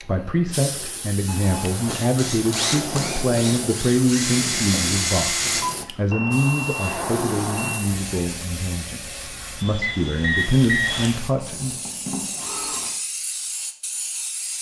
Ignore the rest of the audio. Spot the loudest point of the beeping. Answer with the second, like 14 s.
11 s.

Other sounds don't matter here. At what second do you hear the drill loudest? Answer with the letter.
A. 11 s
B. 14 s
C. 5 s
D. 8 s
C.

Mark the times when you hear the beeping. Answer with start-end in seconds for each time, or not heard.
1.2-2.1, 6.1-7.8, 9.8-11.1.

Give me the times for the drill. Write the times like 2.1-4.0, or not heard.
1.9-5.8, 9.6-12.9.